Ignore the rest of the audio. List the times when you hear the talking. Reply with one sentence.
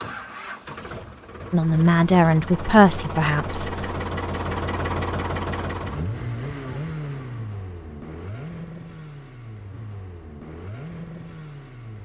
The talking can be heard from 1.5 to 3.7 s.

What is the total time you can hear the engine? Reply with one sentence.
You can hear the engine for 12 seconds altogether.